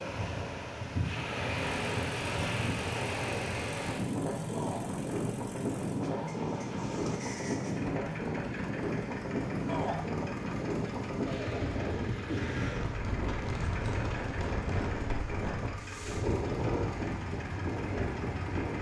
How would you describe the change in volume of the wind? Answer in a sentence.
The loudness of the wind stays about the same.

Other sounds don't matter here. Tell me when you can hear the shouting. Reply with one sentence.
You can hear the shouting from 4.5 to 4.9 s and from 9.7 to 10.1 s.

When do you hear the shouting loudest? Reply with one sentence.
The loudest moment of the shouting is at 10 seconds.